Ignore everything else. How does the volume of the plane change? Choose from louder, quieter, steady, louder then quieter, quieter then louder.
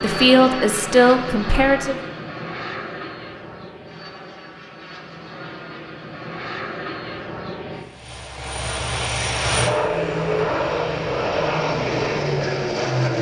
quieter then louder.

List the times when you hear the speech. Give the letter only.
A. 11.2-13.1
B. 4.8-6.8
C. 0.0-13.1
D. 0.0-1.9
D.